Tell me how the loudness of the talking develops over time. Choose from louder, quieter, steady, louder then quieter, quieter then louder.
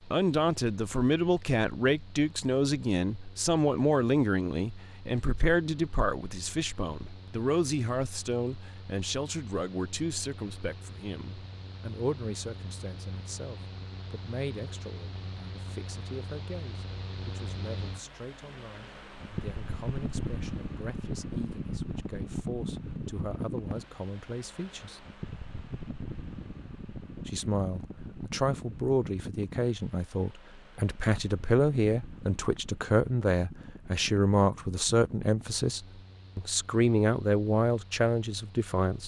quieter then louder.